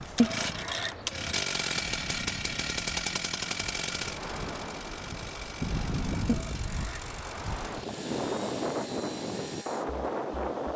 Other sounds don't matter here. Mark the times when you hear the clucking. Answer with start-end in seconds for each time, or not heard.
0.1-1.4, 6.2-7.2.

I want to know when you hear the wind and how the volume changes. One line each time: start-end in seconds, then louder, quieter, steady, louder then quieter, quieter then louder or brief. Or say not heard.
0.0-10.7 louder.